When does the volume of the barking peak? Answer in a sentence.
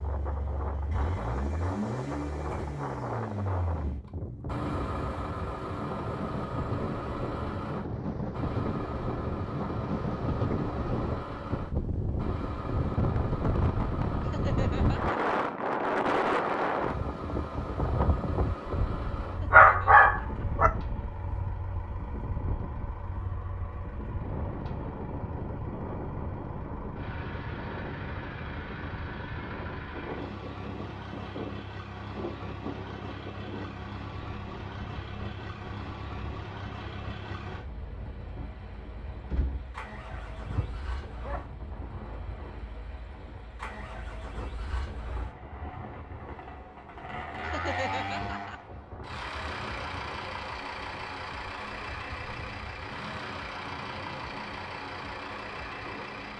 The volume of the barking peaks at 20 seconds.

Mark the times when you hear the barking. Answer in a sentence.
You can hear the barking from 19.5 to 20.7 s and from 39.3 to 41.5 s.